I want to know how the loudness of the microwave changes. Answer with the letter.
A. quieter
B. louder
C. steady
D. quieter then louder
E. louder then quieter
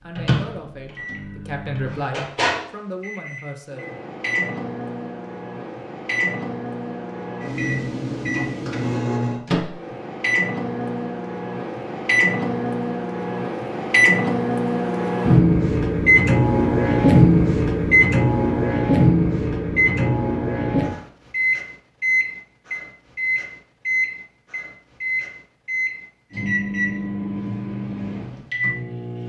E.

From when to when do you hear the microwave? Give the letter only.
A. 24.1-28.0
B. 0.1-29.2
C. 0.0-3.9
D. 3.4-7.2
B.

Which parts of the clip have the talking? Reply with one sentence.
The talking can be heard from 0.0 to 3.9 s.